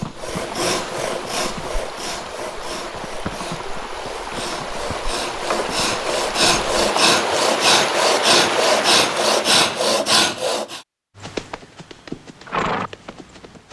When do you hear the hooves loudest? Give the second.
13 s.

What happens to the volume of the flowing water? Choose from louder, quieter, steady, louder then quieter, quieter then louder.
louder.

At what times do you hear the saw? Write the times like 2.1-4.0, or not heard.
0.0-10.8.